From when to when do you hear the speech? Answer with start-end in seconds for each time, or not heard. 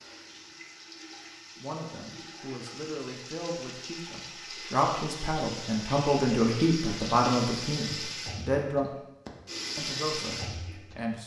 1.6-8.9, 9.8-11.2.